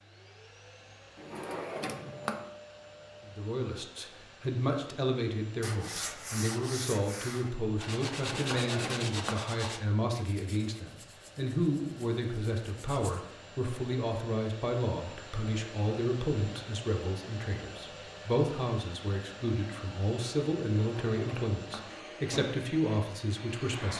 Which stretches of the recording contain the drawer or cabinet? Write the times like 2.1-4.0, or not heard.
1.1-2.5, 8.3-9.4, 20.8-21.9.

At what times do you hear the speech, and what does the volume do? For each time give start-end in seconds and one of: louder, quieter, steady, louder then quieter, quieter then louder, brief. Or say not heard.
3.2-23.9 steady.